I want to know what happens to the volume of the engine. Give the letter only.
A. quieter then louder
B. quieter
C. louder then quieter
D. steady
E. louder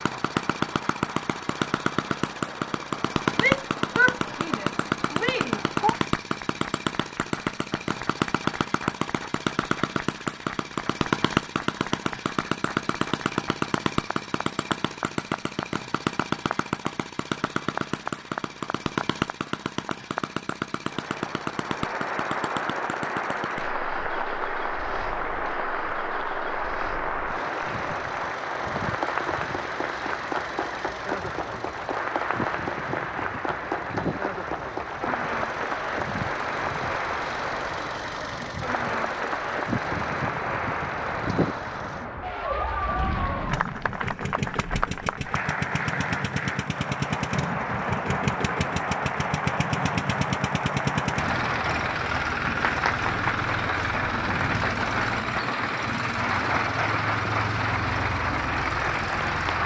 A.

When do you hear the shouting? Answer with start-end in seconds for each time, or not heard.
3.4-6.0.